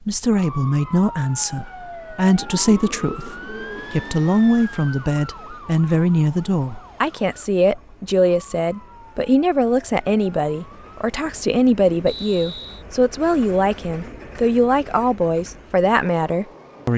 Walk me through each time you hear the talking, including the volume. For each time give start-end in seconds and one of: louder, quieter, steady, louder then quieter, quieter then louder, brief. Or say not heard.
0.1-16.9 steady.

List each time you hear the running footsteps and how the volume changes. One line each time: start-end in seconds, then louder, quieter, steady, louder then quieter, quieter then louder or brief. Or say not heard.
not heard.